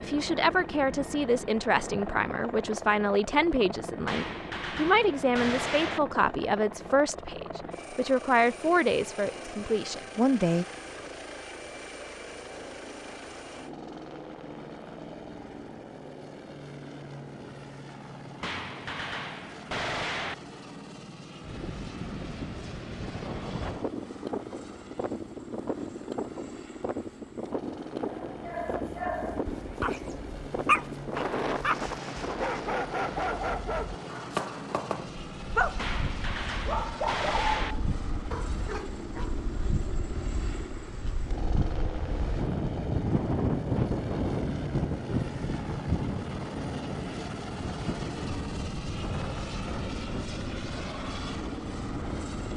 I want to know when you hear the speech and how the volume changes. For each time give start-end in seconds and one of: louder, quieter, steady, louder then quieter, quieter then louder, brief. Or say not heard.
0.0-10.7 steady.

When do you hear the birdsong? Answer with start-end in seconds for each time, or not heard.
not heard.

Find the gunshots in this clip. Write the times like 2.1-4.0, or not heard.
4.0-6.0, 18.4-20.4, 35.8-37.8.